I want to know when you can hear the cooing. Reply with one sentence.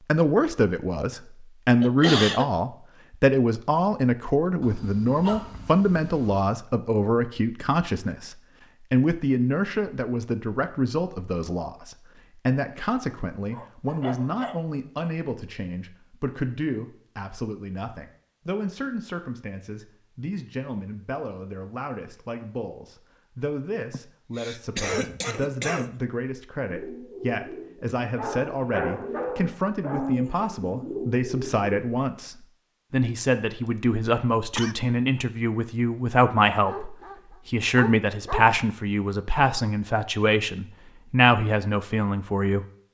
The cooing can be heard from 26.6 to 31.8 s.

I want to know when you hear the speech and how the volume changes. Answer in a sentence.
You can hear the speech from 0.1 to 42.6 s, getting quieter then louder.